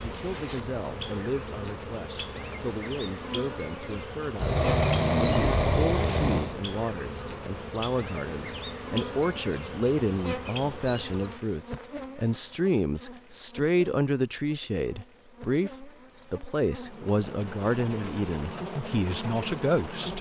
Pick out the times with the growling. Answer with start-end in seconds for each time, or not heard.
4.3-6.5.